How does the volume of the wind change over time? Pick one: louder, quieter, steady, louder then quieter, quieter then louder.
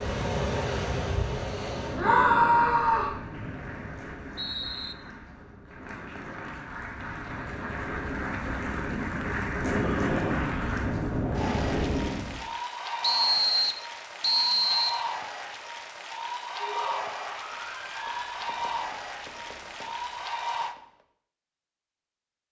quieter then louder.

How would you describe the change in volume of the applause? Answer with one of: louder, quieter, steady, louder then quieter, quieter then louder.
louder.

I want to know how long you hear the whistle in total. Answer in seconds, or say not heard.
4 s.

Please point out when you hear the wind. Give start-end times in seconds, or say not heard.
0.0-12.4.